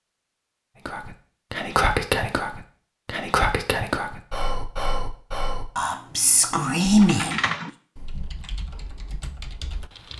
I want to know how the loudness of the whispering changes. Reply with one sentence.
The volume of the whispering goes down, then up.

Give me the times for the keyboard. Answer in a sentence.
The keyboard can be heard from 6.9 to 10.1 s.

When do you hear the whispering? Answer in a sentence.
The whispering can be heard from 0.8 to 7.3 s.